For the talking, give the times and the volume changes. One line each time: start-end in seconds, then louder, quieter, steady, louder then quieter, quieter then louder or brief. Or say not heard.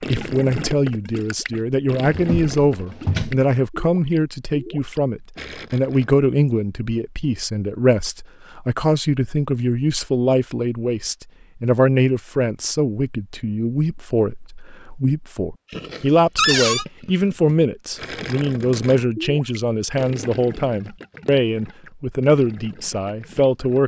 0.0-23.8 steady.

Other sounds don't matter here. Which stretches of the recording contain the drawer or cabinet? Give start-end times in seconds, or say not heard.
2.1-3.5, 16.4-16.9.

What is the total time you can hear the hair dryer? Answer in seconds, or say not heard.
not heard.